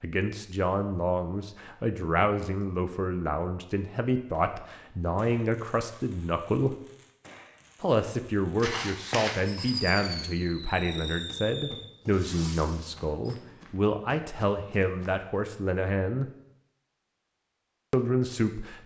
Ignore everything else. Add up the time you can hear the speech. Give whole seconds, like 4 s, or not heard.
16 s.